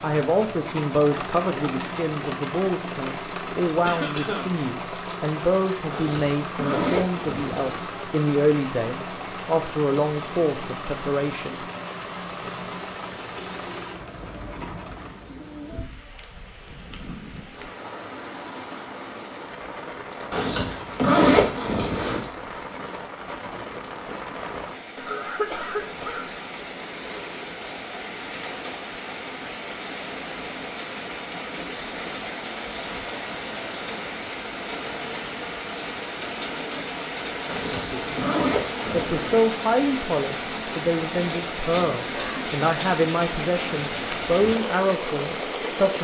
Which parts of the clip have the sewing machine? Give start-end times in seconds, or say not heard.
0.0-15.3.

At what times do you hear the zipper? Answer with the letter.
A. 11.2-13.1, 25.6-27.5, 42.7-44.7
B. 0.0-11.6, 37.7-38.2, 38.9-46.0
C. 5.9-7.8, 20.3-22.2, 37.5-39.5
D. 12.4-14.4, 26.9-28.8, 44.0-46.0
C.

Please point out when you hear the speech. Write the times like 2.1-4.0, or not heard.
0.0-11.6, 37.7-38.2, 38.9-46.0.